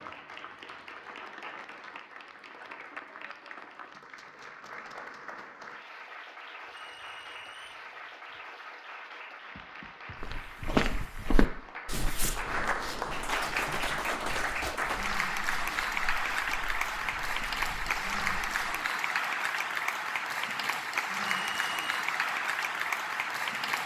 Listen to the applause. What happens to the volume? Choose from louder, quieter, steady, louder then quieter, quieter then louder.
louder.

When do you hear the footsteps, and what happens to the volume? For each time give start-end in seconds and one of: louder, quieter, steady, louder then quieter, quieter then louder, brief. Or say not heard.
10.2-18.6 quieter.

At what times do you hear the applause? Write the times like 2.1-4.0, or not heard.
0.0-23.8.